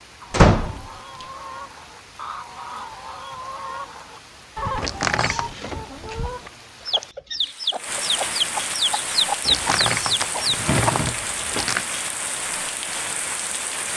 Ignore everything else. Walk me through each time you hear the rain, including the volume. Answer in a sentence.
The rain can be heard from 0.0 to 13.9 s, getting louder.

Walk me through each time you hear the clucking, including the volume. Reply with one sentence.
The clucking can be heard from 0.2 to 11.1 s, getting louder.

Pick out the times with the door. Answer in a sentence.
The door can be heard from 0.3 to 1.2 s, from 4.8 to 5.5 s and from 9.4 to 11.8 s.